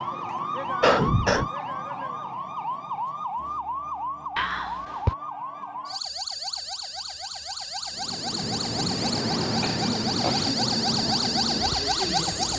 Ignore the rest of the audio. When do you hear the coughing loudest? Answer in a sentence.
The loudest moment of the coughing is at 1 second.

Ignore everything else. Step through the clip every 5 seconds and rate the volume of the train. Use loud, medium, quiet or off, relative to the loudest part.
off, loud, loud.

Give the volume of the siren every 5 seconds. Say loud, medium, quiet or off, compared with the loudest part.
medium, medium, loud.